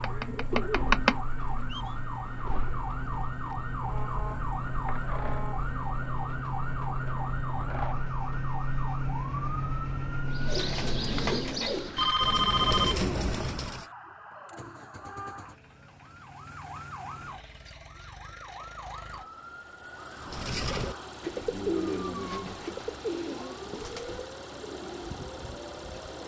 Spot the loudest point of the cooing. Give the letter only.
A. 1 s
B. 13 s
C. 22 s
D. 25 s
A.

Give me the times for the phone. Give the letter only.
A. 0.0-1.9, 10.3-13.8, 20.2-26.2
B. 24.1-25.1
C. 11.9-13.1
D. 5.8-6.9
C.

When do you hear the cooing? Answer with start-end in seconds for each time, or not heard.
0.0-1.9, 10.3-13.8, 20.2-26.2.